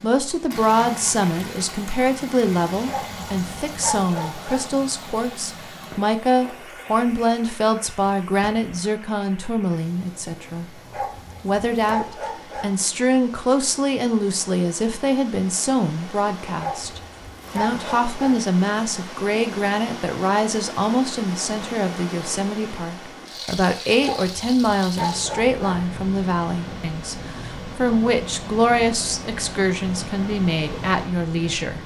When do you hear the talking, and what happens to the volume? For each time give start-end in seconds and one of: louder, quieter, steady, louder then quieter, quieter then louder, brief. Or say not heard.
0.0-10.7 steady
11.4-31.8 steady.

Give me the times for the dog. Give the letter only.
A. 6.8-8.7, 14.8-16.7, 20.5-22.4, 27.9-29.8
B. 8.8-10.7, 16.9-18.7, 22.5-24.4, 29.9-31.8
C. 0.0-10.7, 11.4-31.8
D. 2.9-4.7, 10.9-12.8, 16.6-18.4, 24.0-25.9
D.